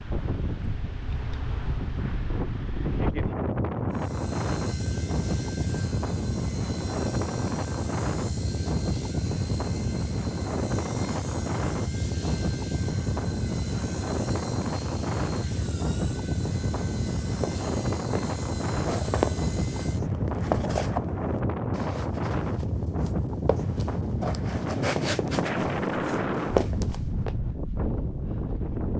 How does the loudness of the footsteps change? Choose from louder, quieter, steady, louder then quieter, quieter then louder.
quieter then louder.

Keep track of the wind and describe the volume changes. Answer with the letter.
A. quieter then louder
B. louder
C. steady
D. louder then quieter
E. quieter
C.